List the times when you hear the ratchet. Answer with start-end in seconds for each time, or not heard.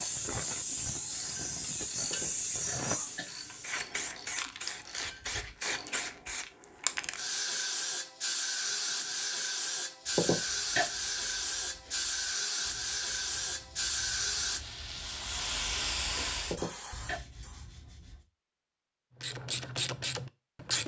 0.0-6.0, 19.2-20.8.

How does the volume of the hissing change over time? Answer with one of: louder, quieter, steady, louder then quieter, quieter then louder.
steady.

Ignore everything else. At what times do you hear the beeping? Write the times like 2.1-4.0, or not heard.
not heard.